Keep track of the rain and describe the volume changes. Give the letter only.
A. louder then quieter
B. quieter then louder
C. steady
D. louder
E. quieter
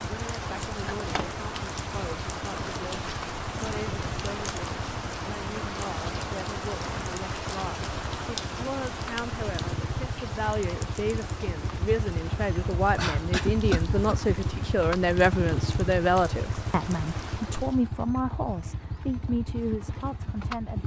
E.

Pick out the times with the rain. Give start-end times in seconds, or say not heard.
0.0-17.9.